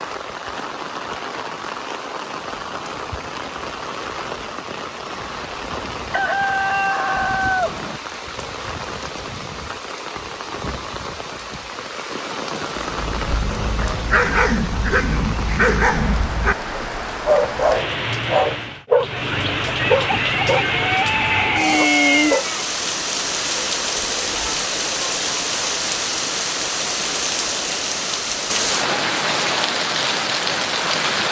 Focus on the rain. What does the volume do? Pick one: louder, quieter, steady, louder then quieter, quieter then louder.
louder.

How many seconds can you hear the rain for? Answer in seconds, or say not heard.
31 s.